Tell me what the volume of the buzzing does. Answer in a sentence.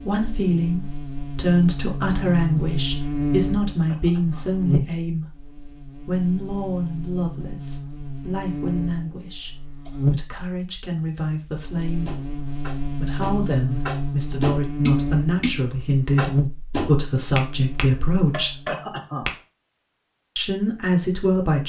The volume of the buzzing stays about the same.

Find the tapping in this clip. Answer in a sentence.
You can hear the tapping from 12.1 to 19.3 s.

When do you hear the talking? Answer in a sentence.
The talking can be heard from 0.0 to 12.2 s, from 12.9 to 18.6 s and from 20.4 to 21.6 s.